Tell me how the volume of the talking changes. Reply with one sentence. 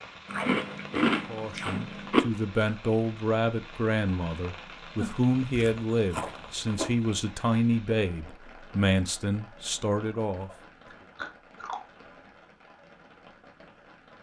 The loudness of the talking stays about the same.